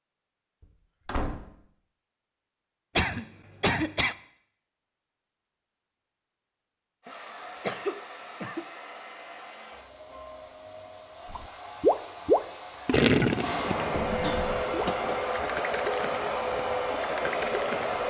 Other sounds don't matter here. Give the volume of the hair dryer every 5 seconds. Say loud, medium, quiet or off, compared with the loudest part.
off, quiet, medium, loud.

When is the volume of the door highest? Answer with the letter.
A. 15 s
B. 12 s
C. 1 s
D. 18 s
C.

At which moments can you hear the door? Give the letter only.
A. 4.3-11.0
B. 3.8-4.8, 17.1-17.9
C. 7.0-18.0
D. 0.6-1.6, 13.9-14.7
D.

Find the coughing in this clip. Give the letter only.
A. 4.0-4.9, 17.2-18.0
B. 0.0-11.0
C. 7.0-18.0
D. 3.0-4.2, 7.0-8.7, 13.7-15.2
D.